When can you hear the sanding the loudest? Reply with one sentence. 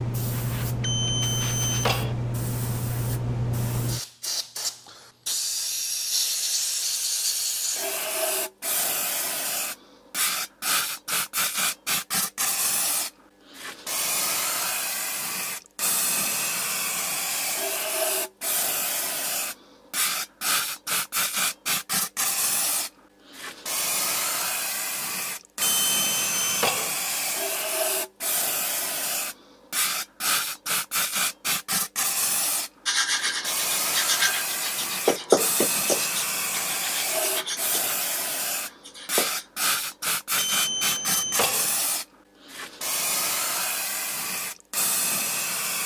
The volume of the sanding peaks at 35 seconds.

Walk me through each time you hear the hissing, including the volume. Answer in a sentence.
You can hear the hissing from 0.0 to 45.8 s, at a steady volume.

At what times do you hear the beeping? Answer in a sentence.
The beeping can be heard from 0.8 to 2.1 s, from 25.6 to 26.9 s and from 40.4 to 41.7 s.